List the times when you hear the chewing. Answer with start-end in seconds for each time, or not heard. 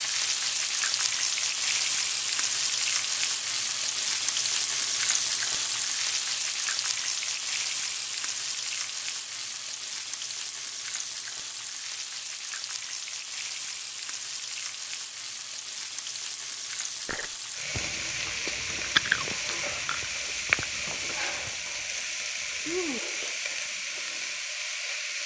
17.1-24.4.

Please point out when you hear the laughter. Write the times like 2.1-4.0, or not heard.
not heard.